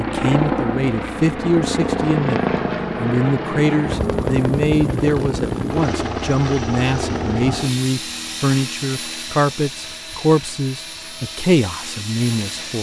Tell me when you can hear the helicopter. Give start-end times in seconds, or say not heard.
0.0-12.7.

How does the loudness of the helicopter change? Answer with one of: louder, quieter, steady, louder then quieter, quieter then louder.
quieter.